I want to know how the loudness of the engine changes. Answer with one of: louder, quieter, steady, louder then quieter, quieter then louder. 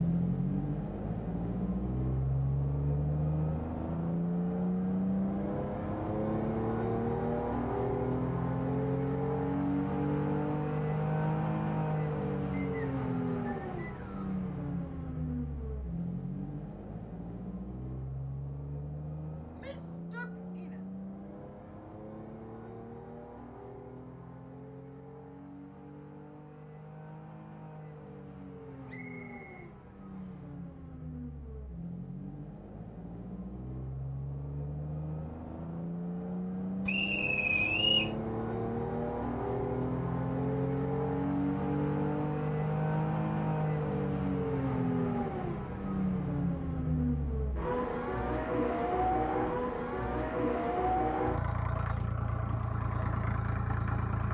quieter then louder.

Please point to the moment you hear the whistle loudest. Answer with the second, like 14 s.
38 s.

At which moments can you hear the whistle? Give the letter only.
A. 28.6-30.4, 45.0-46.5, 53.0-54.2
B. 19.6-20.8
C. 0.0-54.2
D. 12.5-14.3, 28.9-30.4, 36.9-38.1
D.